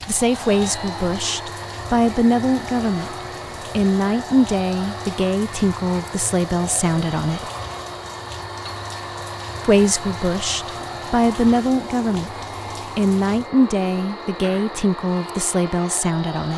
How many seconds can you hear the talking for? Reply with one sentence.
You can hear the talking for 13 seconds altogether.